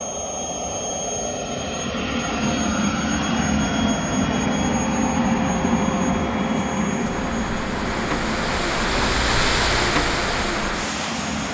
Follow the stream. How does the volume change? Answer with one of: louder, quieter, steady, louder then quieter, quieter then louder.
louder.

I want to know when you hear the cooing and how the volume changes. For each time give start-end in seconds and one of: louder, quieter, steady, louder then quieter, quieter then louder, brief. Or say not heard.
not heard.